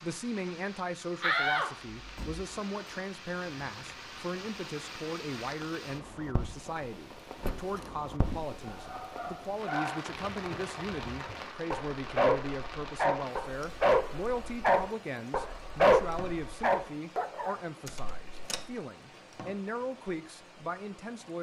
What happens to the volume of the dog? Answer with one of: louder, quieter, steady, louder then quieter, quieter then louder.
louder.